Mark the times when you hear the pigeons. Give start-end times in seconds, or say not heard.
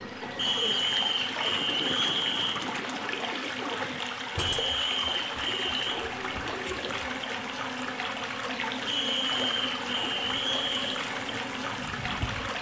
0.0-7.2.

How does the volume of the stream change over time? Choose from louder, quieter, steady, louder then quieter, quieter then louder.
steady.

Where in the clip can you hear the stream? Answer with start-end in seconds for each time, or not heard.
0.0-12.5.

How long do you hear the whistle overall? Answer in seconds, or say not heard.
6 s.